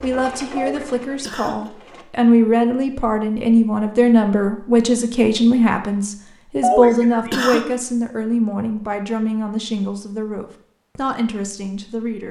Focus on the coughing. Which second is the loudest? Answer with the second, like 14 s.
7 s.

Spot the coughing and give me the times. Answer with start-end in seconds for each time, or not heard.
0.6-1.7, 6.6-7.8.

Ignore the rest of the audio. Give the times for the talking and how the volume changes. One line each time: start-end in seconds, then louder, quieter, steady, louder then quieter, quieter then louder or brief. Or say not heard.
0.0-12.2 quieter.